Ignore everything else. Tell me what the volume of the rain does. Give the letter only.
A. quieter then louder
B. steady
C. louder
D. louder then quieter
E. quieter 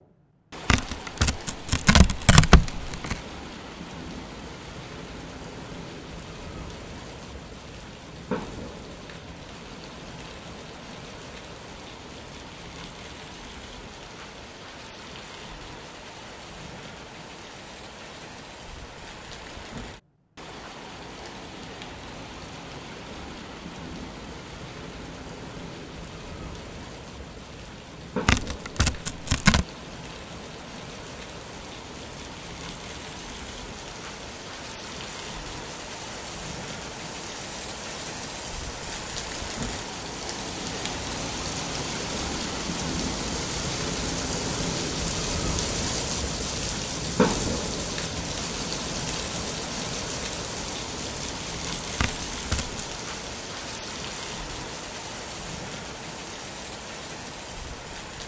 C.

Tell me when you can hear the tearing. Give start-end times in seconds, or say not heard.
0.7-3.2, 28.2-29.6, 52.0-52.8.